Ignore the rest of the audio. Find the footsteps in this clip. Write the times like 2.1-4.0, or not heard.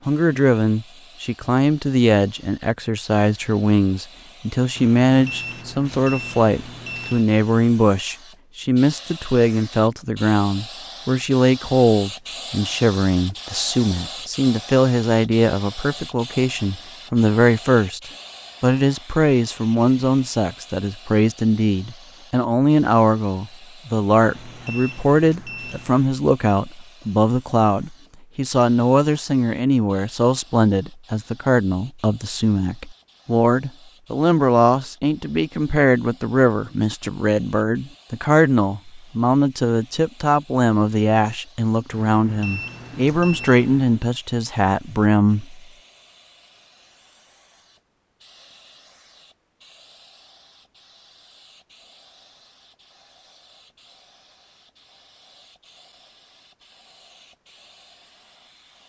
not heard.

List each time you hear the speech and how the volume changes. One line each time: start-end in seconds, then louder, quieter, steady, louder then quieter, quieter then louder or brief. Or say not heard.
0.1-45.6 steady.